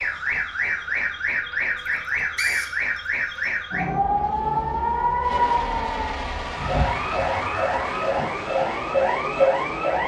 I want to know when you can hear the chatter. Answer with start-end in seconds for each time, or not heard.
not heard.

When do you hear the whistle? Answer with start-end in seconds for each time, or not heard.
1.9-3.5.